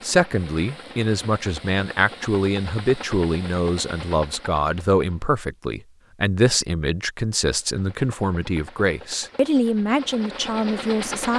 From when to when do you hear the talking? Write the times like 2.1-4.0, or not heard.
0.0-11.3.